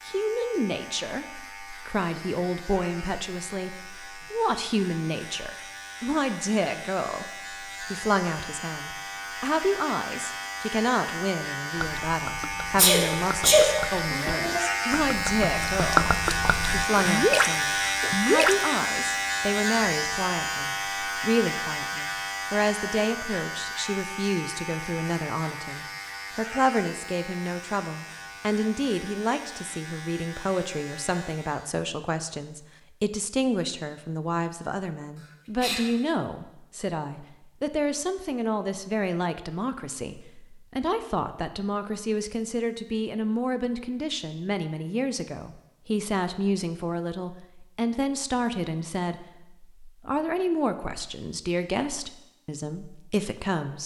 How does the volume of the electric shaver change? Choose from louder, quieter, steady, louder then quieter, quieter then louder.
louder then quieter.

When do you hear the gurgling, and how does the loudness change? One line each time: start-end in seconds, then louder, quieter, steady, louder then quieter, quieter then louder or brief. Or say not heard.
11.8-18.6 louder.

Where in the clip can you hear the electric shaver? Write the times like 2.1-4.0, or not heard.
0.0-31.8.